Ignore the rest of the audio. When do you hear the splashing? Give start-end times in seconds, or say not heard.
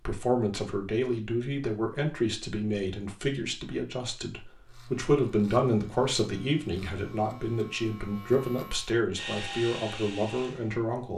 not heard.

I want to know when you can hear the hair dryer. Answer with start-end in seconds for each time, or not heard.
9.2-10.8.